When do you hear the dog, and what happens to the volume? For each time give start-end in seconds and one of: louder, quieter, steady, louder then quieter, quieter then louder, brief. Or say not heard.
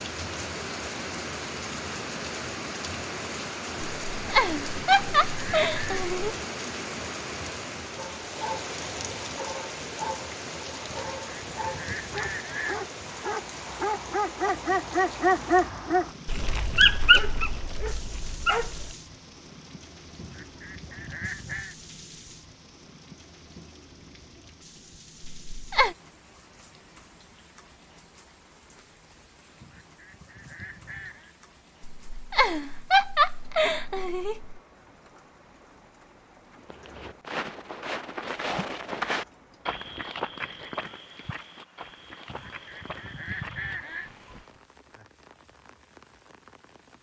8.0-18.9 louder.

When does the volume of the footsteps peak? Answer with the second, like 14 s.
39 s.